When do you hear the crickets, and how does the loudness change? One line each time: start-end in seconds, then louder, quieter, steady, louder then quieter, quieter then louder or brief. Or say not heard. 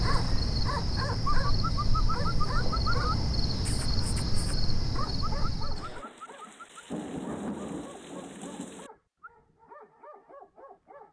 0.0-6.0 steady.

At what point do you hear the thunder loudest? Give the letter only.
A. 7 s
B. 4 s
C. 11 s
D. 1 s
A.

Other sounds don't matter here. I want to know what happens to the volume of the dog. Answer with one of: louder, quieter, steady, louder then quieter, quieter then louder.
quieter.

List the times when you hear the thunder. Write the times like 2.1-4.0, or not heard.
5.8-8.9.